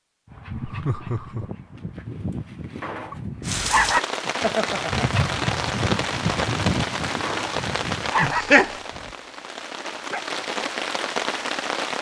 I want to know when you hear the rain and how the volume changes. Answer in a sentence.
The rain can be heard from 3.4 to 11.9 s, getting quieter then louder.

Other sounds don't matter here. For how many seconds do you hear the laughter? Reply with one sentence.
The laughter can be heard for 2 seconds in total.